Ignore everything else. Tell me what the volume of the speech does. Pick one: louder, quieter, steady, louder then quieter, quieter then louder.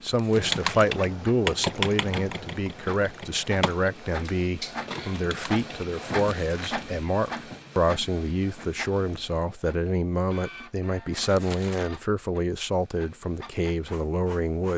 steady.